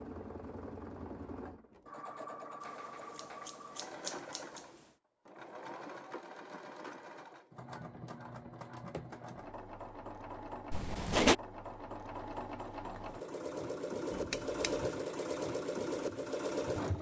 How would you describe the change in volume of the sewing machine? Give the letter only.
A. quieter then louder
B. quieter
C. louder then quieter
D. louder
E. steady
D.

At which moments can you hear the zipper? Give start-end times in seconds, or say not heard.
10.7-11.3.